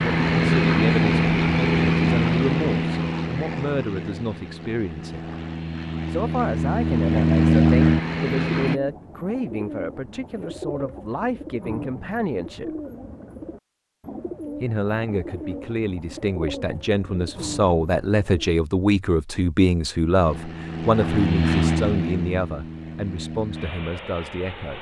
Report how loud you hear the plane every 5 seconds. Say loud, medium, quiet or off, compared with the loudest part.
loud, loud, off, off, medium.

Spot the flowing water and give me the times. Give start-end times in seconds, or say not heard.
not heard.